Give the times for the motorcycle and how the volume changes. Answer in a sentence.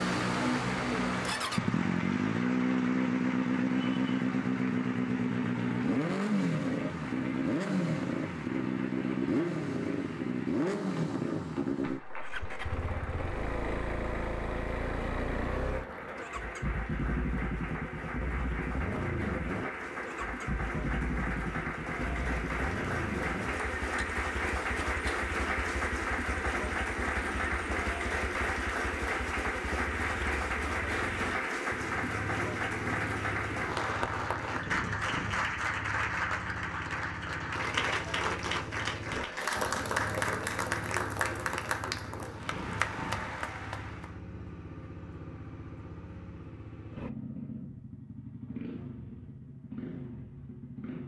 You can hear the motorcycle from 0.0 to 51.0 s, getting quieter.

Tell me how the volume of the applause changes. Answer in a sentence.
The volume of the applause goes up.